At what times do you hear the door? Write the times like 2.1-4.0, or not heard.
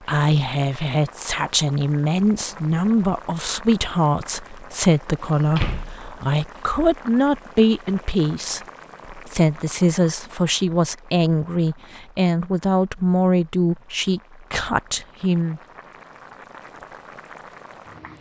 5.2-6.6.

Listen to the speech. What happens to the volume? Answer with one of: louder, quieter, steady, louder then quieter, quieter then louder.
steady.